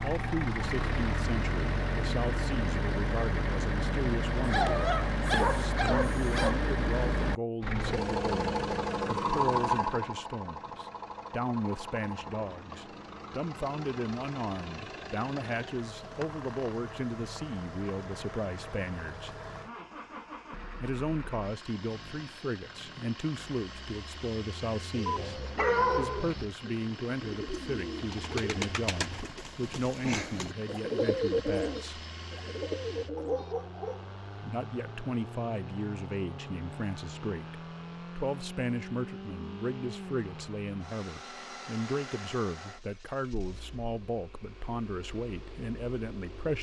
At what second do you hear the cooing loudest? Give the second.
31 s.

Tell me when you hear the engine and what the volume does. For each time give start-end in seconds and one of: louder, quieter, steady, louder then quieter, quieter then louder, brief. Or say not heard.
0.0-46.5 quieter.